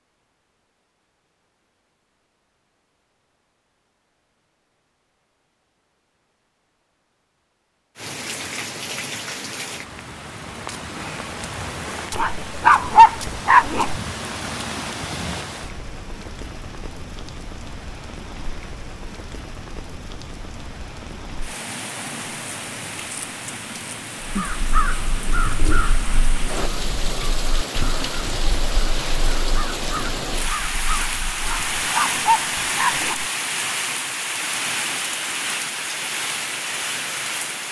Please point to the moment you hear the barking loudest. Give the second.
13 s.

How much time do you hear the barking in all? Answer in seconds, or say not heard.
4 s.